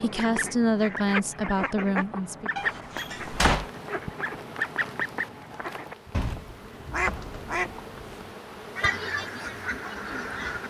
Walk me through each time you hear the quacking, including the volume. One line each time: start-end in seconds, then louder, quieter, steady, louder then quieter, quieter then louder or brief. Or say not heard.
0.0-10.6 steady.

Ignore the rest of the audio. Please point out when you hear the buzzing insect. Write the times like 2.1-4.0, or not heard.
3.1-10.6.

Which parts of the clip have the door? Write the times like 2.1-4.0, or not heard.
2.5-3.7, 6.8-8.1.